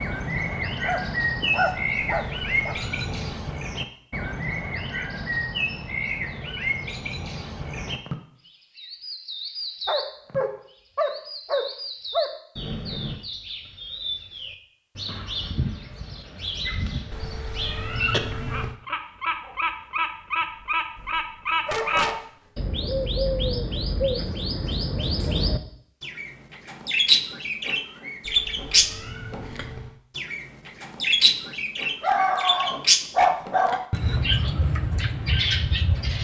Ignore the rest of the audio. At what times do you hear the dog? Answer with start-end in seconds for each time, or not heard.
0.8-2.8, 9.8-12.3, 20.9-22.2, 32.0-33.8.